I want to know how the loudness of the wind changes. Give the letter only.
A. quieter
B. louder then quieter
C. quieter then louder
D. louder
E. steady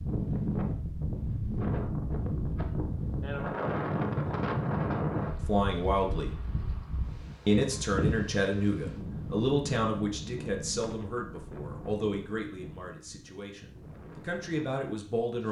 A.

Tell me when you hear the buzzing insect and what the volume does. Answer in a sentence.
You can't hear the buzzing insect here.